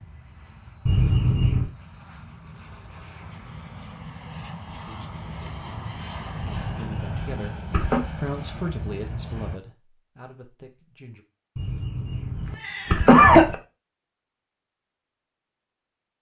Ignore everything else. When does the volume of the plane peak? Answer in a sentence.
The volume of the plane peaks at 7 seconds.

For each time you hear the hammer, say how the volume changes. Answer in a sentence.
You can't hear the hammer here.